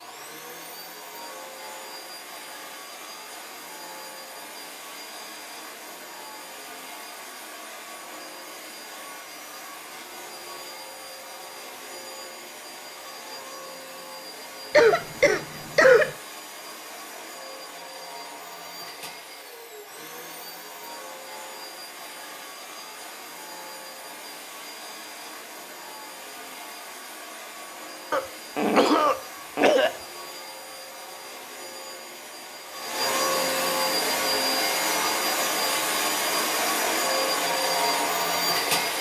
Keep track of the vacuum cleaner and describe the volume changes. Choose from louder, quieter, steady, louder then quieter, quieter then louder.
louder.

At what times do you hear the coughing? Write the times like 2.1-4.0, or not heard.
14.7-16.1, 28.1-29.9.